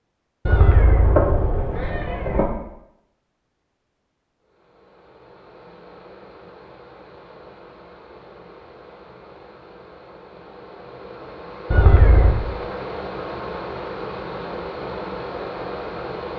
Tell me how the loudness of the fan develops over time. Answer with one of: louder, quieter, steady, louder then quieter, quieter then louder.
louder.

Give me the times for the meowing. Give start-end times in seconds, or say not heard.
0.5-2.5, 11.7-12.3.